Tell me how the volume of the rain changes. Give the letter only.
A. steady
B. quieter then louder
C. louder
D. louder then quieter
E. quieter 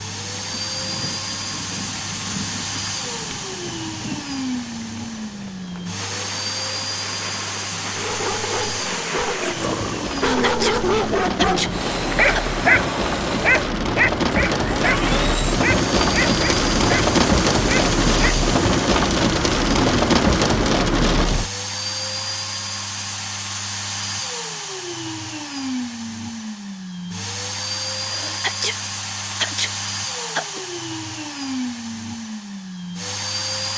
C.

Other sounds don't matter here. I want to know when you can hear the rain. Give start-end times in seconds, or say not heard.
0.0-21.5.